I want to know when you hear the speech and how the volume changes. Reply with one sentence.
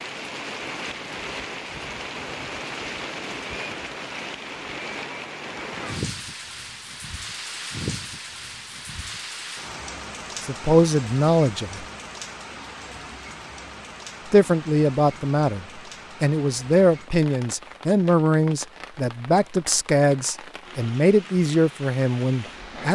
You can hear the speech briefly from 10.4 to 11.8 s; and from 14.3 to 22.8 s, at a steady volume.